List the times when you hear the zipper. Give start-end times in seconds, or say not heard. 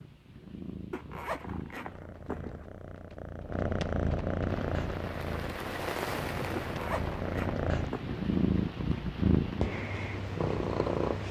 0.9-2.6, 6.6-8.2.